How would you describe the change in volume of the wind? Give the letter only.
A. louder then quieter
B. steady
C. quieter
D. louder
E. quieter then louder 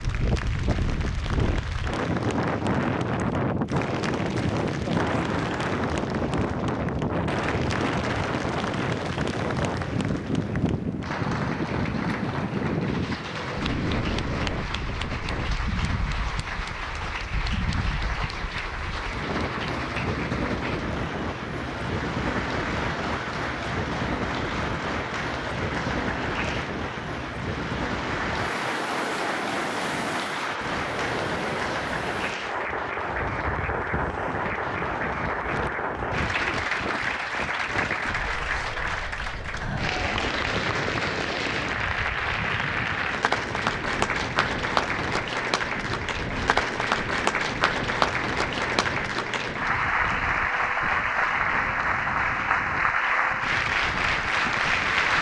C.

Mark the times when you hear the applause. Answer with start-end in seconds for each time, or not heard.
0.0-55.1.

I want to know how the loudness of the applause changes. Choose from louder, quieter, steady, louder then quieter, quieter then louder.
louder.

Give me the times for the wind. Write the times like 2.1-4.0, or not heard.
0.0-55.1.